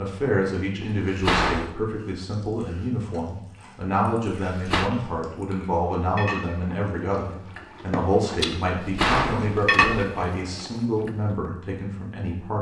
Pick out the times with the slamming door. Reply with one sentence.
You can hear the slamming door from 0.8 to 1.8 s, from 4.5 to 4.9 s and from 8.7 to 10.1 s.